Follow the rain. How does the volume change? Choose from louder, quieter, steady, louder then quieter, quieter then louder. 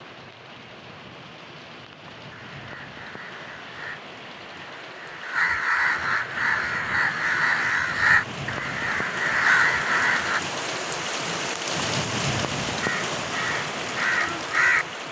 louder.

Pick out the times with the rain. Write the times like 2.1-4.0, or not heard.
0.0-15.0.